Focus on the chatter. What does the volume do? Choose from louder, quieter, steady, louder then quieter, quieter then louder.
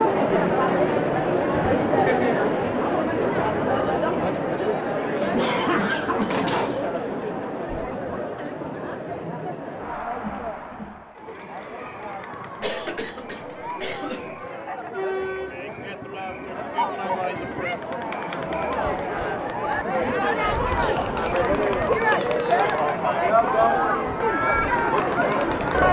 quieter then louder.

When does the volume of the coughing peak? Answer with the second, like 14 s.
6 s.